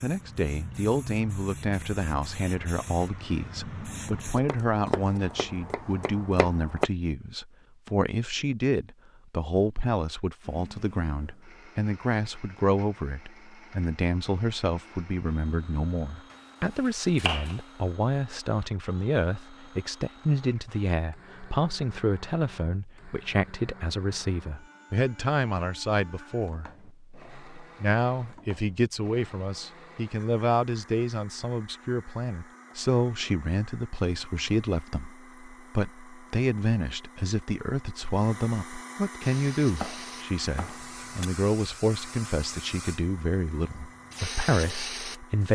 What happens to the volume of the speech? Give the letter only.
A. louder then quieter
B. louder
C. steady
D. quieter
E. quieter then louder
C.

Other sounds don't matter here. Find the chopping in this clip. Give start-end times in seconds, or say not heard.
4.3-6.9, 16.3-17.6, 39.6-41.2.